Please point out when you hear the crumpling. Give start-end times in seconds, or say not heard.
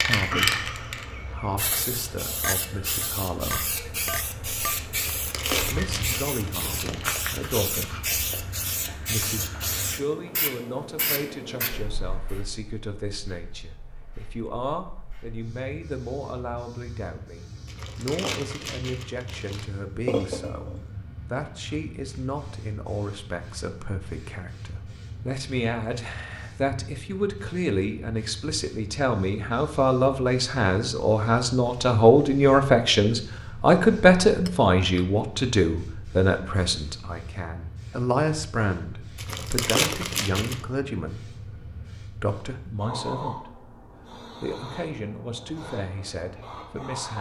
5.0-7.0, 17.6-19.6, 39.1-40.6.